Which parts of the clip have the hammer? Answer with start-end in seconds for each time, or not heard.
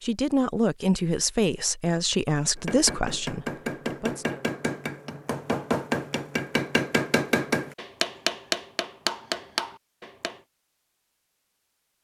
2.5-10.4.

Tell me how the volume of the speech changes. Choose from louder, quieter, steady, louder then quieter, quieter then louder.
quieter.